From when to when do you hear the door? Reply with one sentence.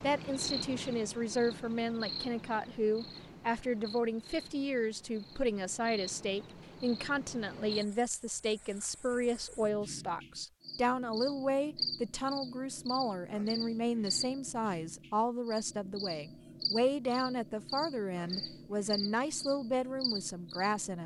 You can't hear the door here.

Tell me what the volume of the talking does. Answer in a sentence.
The loudness of the talking stays about the same.